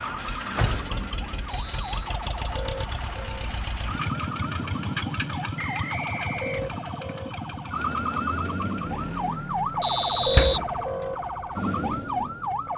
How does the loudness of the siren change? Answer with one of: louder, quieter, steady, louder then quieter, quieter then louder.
louder.